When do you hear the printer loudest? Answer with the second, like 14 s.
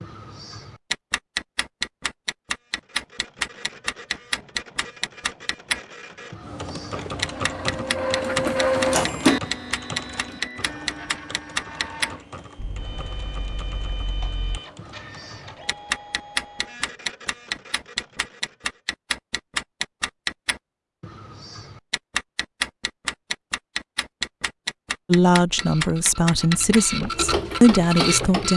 9 s.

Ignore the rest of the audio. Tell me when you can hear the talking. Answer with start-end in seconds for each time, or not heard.
25.1-28.5.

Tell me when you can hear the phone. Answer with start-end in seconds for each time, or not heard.
not heard.